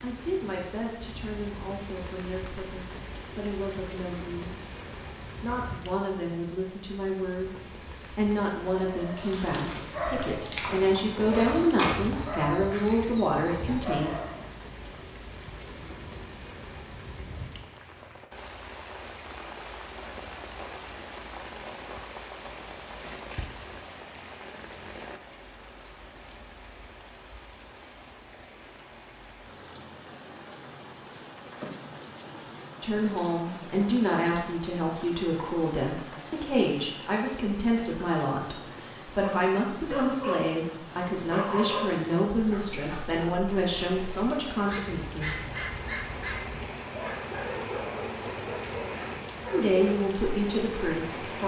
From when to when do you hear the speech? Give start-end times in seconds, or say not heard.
0.0-4.8, 5.4-14.1, 32.8-45.4, 49.5-51.4.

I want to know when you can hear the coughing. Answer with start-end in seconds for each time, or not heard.
not heard.